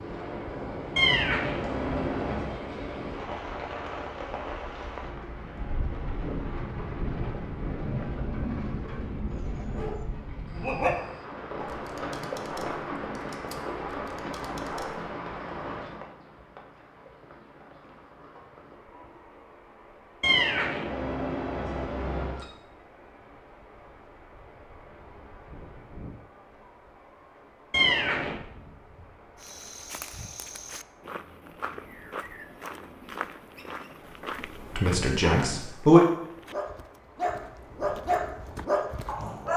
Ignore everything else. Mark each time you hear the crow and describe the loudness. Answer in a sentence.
The crow can't be heard in this clip.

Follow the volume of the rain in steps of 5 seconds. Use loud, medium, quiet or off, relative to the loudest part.
loud, loud, loud, medium, quiet, quiet, quiet, quiet.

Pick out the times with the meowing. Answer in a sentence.
You can hear the meowing from 0.9 to 2.5 s, from 20.2 to 22.4 s and from 27.7 to 28.4 s.